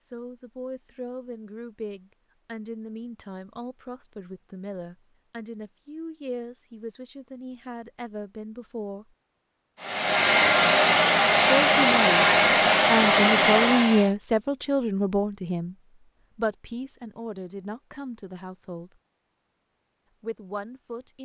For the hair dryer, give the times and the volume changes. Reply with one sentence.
The hair dryer can be heard from 9.8 to 14.1 s, at a steady volume.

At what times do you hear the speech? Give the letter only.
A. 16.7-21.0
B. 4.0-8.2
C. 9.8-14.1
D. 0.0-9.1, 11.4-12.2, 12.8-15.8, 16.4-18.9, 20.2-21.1
D.